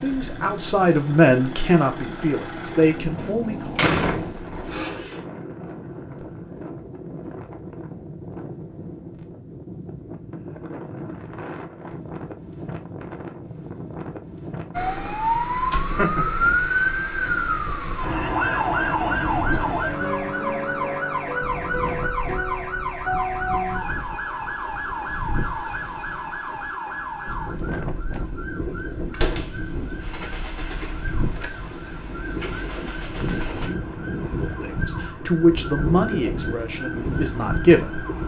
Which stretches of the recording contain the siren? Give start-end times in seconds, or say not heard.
14.8-38.2.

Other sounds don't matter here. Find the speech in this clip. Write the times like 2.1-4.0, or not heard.
0.0-3.8, 34.2-38.0.